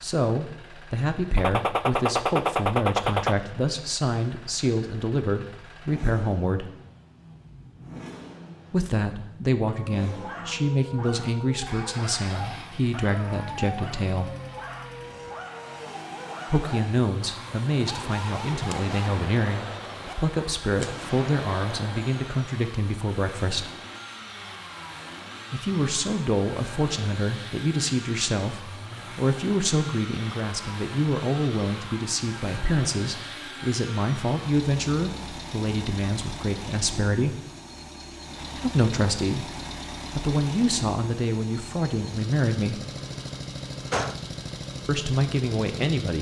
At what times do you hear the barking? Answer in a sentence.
The barking can be heard from 9.7 to 20.4 s.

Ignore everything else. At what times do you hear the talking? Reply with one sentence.
The talking can be heard from 0.0 to 6.7 s, from 8.7 to 14.3 s, from 16.4 to 23.7 s, from 25.5 to 37.4 s, from 38.5 to 42.8 s and from 44.9 to 46.1 s.